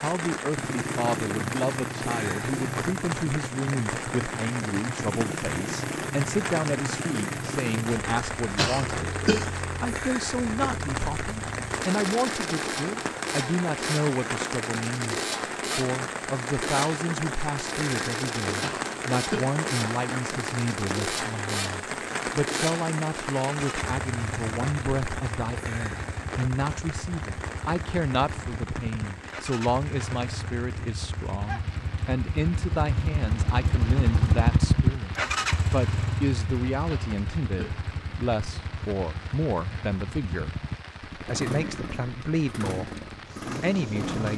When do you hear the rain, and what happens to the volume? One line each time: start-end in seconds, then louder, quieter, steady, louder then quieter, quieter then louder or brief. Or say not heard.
0.0-44.3 quieter.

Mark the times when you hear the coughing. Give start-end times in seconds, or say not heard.
8.6-9.5, 18.6-20.4, 36.9-37.8.